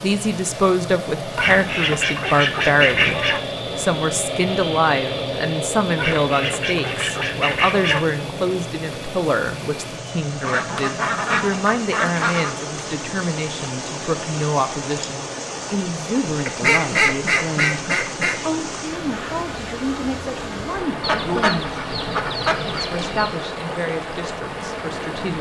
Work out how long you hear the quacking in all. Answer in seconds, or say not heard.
11 s.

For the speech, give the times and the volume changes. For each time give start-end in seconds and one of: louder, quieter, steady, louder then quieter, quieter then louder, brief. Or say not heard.
0.0-21.9 quieter
22.6-25.3 brief.